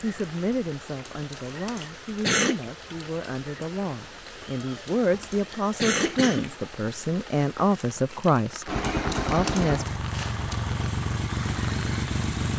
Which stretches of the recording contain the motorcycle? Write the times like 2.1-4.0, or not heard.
8.7-12.5.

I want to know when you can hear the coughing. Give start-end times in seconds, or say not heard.
1.1-2.6, 4.6-6.5, 8.9-9.7.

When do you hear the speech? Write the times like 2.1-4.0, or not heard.
0.0-8.7, 9.3-9.8.